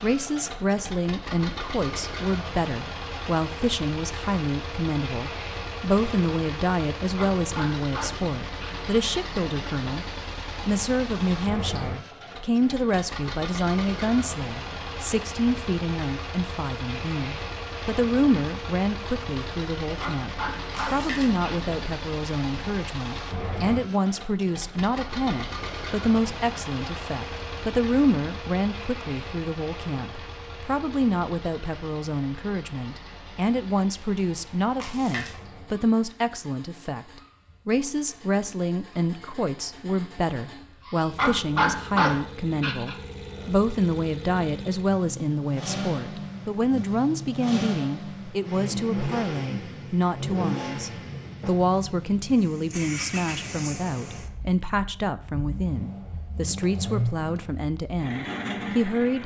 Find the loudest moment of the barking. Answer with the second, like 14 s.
42 s.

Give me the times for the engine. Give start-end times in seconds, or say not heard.
0.0-59.2.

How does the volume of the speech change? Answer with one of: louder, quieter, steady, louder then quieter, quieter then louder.
steady.